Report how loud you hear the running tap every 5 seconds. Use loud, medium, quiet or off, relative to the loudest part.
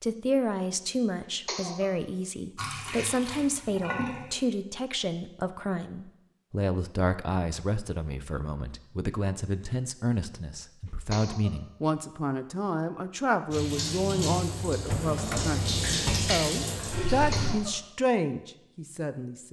medium, off, loud, loud.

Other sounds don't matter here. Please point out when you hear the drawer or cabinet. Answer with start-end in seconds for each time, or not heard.
14.8-16.4.